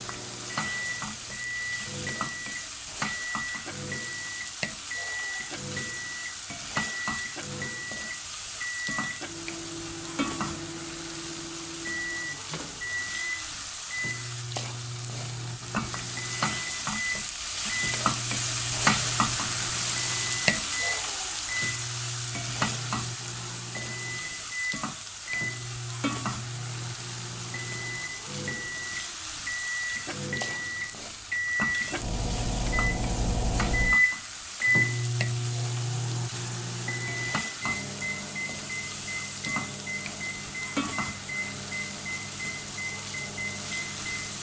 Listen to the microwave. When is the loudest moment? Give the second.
34 s.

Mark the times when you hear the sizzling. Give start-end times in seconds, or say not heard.
0.0-44.3.